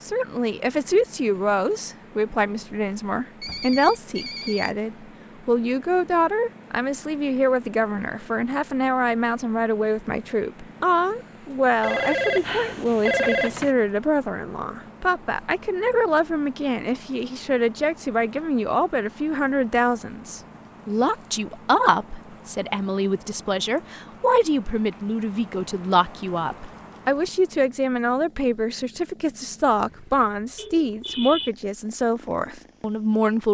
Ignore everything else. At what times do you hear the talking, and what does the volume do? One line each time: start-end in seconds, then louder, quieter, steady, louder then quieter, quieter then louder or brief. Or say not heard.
0.0-33.5 steady.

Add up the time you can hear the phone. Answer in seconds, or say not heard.
4 s.